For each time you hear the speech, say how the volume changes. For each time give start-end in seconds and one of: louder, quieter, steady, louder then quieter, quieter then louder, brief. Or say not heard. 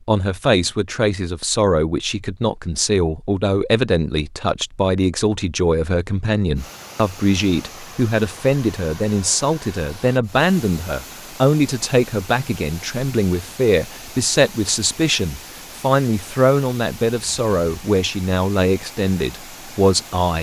0.1-20.3 steady.